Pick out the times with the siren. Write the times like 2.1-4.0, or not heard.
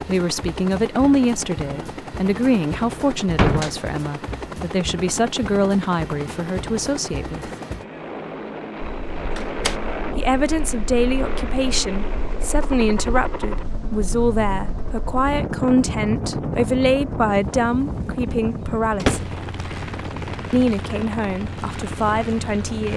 not heard.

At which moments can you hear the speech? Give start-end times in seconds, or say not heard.
0.1-7.5, 10.2-19.2, 20.5-22.9.